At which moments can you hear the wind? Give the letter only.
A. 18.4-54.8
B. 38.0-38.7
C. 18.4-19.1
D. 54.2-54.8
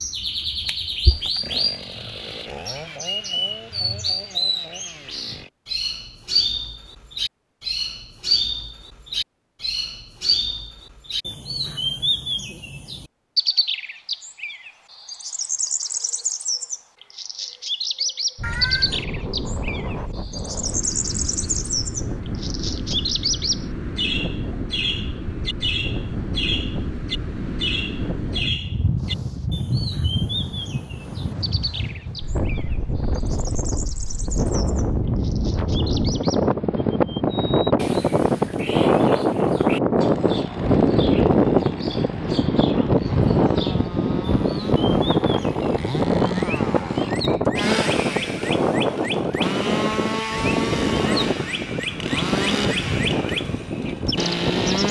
A.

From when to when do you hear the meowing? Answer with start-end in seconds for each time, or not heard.
18.4-19.1.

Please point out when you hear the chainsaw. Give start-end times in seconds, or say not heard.
0.1-5.5, 40.0-54.8.